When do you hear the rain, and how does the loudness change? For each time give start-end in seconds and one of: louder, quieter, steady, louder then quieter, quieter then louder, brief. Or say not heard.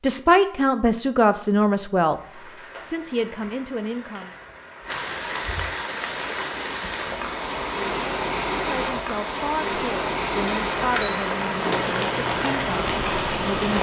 2.0-13.7 louder.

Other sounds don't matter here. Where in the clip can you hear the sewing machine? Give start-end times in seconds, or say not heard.
10.3-13.7.